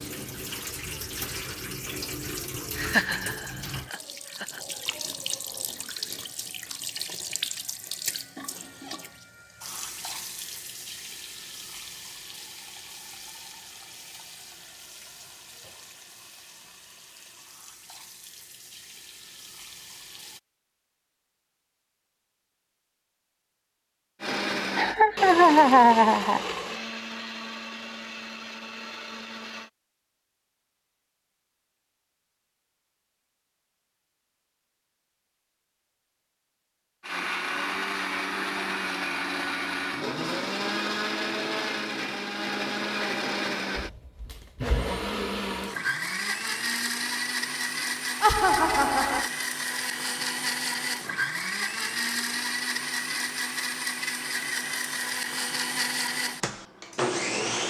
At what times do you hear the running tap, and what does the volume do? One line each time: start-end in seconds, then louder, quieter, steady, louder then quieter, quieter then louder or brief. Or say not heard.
0.0-20.4 quieter.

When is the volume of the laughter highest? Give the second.
26 s.